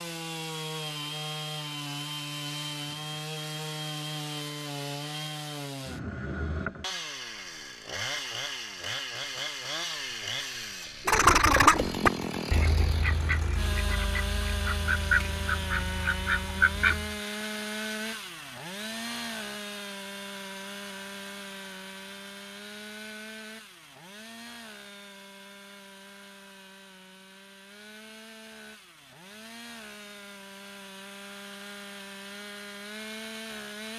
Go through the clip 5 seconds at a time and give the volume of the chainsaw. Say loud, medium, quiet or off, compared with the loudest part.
loud, loud, loud, loud, medium, quiet, medium.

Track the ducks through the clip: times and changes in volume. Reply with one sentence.
The ducks can be heard from 11.1 to 17.2 s, getting quieter then louder.